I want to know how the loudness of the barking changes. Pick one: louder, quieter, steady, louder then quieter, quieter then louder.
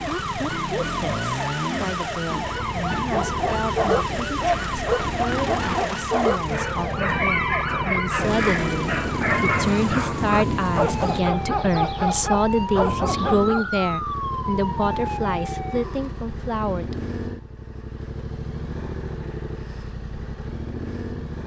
steady.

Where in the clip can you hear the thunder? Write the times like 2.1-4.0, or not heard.
8.2-11.2.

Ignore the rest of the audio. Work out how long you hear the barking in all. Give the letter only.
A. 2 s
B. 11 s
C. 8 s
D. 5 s
B.